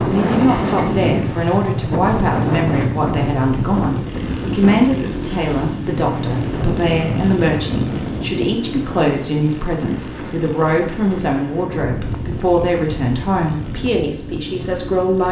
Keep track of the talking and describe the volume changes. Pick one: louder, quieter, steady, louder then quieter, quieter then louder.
steady.